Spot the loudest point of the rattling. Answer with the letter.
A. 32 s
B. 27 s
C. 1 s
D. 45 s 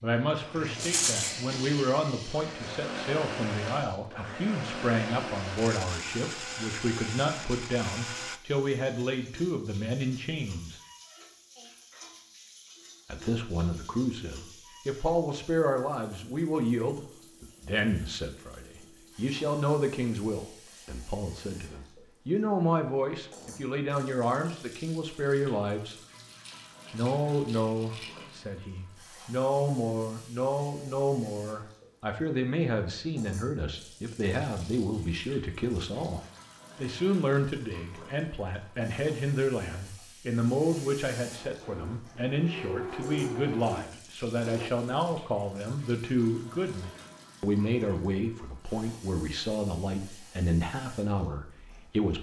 C.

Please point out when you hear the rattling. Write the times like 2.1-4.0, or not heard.
0.8-1.4, 26.2-28.3.